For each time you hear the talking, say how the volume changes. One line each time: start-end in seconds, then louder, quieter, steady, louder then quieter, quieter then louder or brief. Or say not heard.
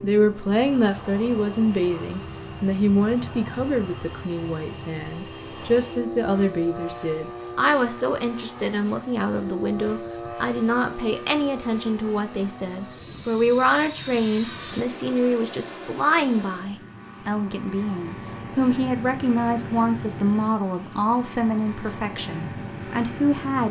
0.0-23.6 steady.